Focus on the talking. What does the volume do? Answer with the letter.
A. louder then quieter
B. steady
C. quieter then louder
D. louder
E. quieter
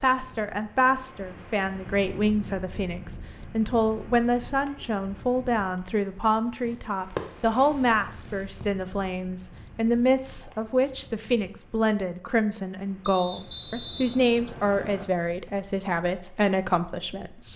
B.